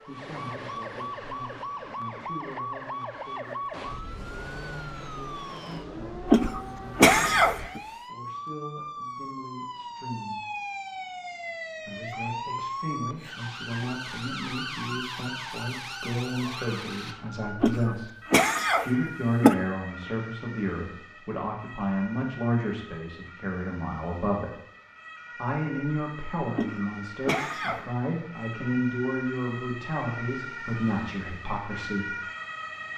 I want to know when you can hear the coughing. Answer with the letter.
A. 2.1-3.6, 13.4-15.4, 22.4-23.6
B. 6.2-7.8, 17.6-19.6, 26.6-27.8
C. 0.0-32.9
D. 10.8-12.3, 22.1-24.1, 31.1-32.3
B.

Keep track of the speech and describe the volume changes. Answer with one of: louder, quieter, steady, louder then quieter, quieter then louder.
louder.